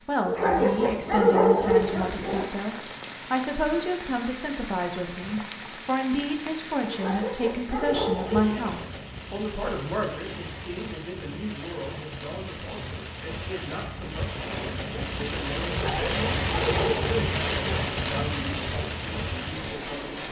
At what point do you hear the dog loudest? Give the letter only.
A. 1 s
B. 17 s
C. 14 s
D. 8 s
A.